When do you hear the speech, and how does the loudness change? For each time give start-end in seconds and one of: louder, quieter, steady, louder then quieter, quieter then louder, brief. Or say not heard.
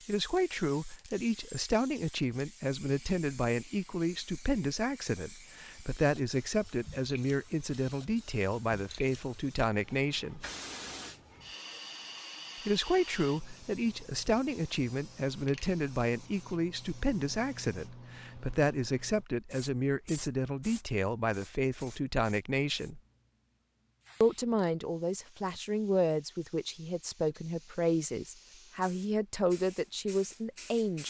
0.1-10.4 steady
12.7-23.0 steady
24.2-31.0 steady.